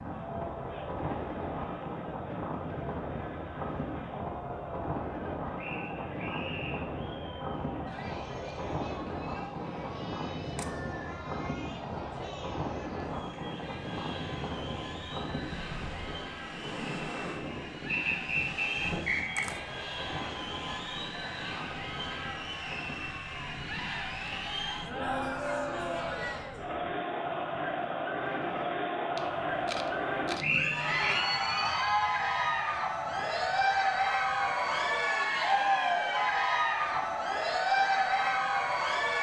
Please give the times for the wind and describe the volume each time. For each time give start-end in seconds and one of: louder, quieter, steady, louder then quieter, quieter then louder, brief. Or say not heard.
0.0-39.1 quieter.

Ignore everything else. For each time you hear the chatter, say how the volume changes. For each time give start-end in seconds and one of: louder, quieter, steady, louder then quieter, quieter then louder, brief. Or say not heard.
0.0-39.1 louder.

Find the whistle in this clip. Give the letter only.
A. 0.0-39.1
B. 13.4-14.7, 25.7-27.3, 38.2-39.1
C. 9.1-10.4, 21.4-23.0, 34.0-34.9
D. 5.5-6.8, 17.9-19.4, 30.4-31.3
D.